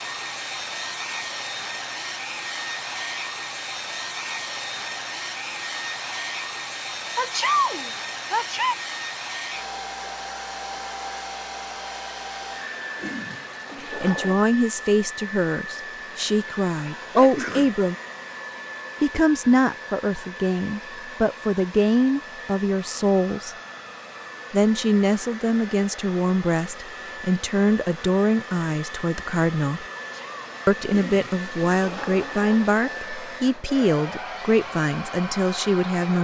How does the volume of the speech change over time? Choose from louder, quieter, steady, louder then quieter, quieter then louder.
steady.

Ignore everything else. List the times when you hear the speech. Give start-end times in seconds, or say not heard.
13.8-17.9, 19.0-23.6, 24.5-29.9, 30.6-36.2.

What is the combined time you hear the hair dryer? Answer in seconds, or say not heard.
36 s.